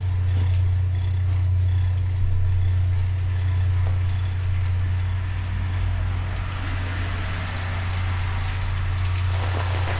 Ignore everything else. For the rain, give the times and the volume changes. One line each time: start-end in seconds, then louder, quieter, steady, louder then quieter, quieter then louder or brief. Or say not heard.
0.0-9.9 louder.